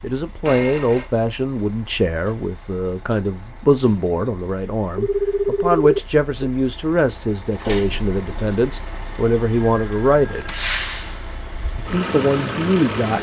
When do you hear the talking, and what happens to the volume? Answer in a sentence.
You can hear the talking from 0.0 to 10.5 s, at a steady volume; and briefly from 11.8 to 13.1 s.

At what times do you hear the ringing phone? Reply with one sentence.
You can hear the ringing phone from 0.5 to 1.1 s, from 5.0 to 6.5 s and from 9.6 to 10.7 s.